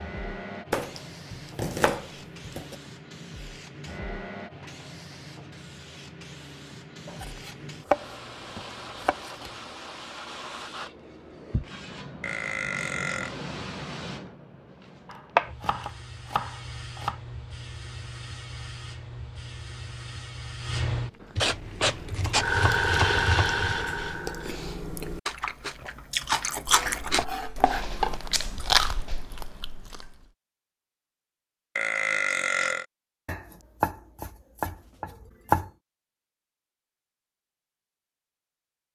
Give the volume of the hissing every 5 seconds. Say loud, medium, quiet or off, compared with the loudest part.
quiet, quiet, quiet, medium, loud, off, off, off.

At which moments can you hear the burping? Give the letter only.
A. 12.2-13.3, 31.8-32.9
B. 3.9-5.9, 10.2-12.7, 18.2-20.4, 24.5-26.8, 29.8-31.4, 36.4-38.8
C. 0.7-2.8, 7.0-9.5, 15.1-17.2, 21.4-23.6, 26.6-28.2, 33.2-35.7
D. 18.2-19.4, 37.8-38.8
A.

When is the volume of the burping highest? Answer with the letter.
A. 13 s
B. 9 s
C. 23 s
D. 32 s
D.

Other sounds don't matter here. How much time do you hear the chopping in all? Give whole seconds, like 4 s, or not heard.
13 s.